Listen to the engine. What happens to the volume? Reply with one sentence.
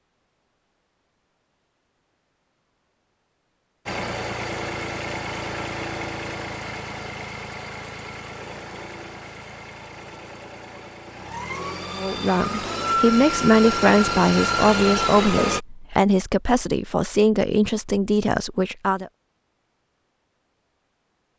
The volume of the engine goes down, then up.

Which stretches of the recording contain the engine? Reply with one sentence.
The engine can be heard from 3.9 to 15.6 s.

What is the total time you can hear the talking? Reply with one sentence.
You can hear the talking for 7 seconds altogether.